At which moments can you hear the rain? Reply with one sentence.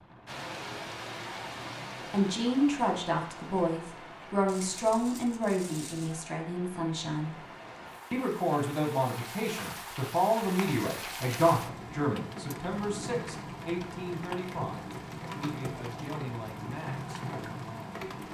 The rain can be heard from 0.0 to 18.2 s.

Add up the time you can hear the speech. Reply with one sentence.
The speech can be heard for 15 seconds in total.